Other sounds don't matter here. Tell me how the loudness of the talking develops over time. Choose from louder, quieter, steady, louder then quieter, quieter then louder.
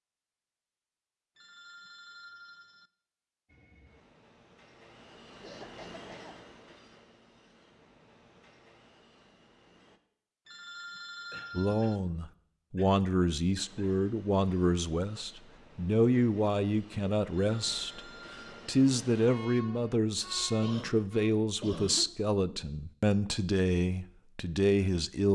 steady.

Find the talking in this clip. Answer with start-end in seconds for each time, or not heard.
11.6-25.3.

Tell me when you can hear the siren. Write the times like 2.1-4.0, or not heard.
not heard.